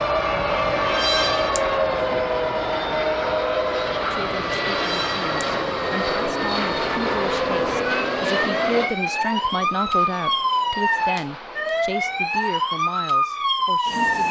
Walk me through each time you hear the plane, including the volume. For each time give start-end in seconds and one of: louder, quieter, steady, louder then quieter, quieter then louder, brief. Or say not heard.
0.0-14.2 quieter.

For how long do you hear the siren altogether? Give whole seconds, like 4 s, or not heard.
14 s.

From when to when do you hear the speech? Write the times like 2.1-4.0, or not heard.
4.0-14.2.